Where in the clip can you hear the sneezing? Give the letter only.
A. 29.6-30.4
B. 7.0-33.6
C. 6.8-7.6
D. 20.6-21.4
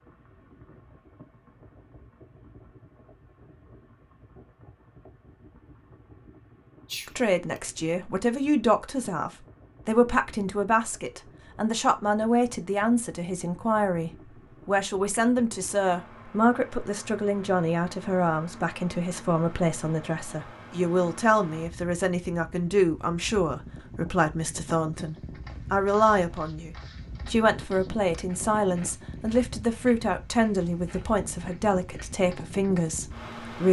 C.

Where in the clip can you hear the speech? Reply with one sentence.
The speech can be heard from 7.0 to 33.6 s.